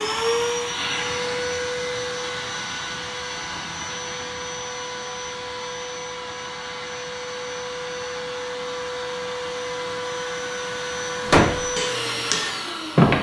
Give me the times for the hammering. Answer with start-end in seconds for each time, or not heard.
11.2-13.1.